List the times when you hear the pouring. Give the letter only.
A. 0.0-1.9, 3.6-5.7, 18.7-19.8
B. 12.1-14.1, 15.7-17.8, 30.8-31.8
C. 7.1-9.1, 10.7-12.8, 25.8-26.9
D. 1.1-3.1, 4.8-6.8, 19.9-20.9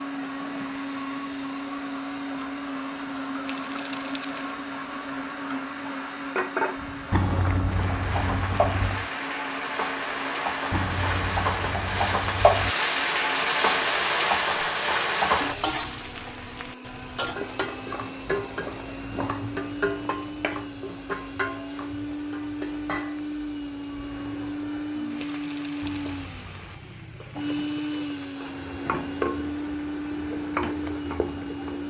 C.